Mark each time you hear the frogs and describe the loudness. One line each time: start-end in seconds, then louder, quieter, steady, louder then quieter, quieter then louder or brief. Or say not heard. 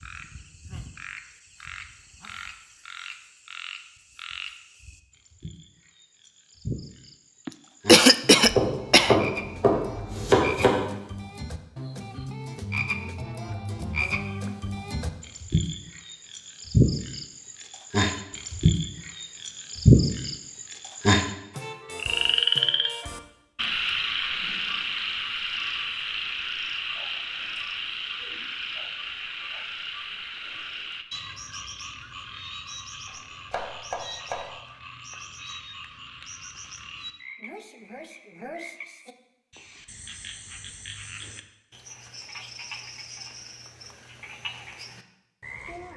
0.0-45.9 louder then quieter.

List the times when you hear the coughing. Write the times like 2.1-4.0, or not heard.
7.5-9.2.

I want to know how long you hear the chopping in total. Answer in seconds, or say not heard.
3 s.